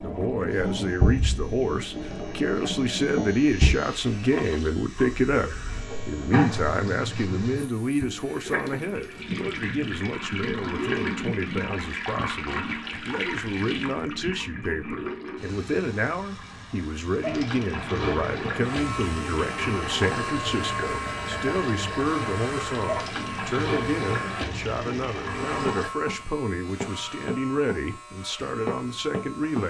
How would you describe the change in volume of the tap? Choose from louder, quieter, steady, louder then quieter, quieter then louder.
steady.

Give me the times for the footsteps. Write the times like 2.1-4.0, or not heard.
25.6-29.6.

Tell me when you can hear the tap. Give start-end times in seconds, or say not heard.
0.0-25.9.